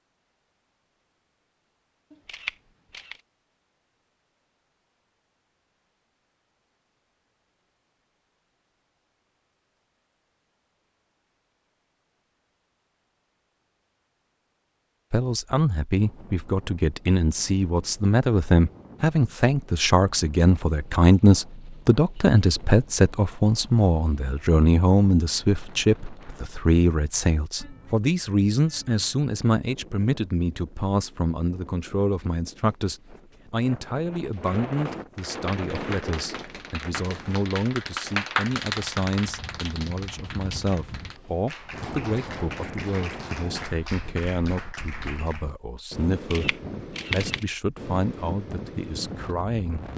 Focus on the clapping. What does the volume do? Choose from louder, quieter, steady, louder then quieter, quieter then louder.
louder then quieter.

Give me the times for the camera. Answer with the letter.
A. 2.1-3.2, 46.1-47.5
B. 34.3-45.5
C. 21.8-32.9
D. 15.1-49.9
A.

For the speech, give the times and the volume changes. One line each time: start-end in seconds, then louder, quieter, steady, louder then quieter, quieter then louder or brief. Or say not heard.
15.1-49.9 quieter.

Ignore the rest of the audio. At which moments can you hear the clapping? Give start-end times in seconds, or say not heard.
34.3-45.5.